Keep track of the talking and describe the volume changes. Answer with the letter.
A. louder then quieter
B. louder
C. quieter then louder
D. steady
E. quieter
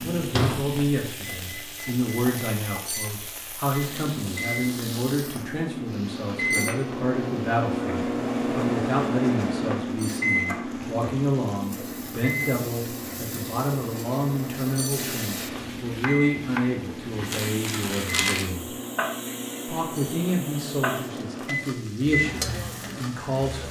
D.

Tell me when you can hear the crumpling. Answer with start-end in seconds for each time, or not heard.
17.3-18.4.